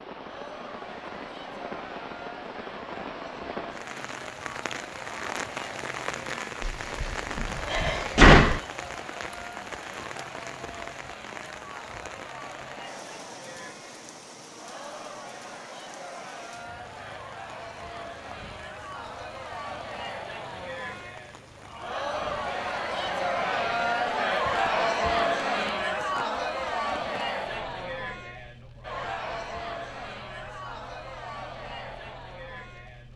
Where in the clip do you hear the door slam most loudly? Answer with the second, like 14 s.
8 s.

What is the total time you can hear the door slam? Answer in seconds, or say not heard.
2 s.